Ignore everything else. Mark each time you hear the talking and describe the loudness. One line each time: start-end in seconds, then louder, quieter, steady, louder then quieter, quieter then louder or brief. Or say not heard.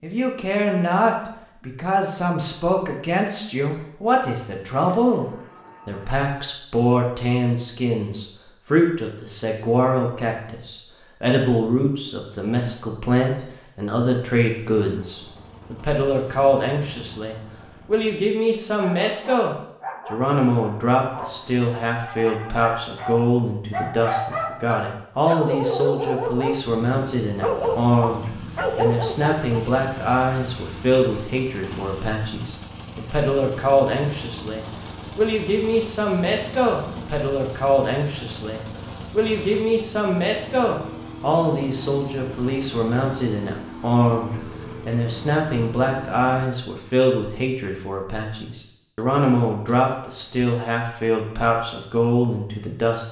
0.0-53.0 steady.